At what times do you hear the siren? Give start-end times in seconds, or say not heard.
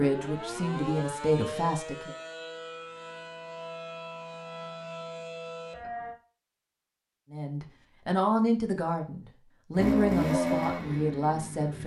0.0-6.2.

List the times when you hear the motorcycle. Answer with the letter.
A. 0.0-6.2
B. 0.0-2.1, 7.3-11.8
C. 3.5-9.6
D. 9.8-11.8
D.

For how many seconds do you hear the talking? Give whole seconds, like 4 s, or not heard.
7 s.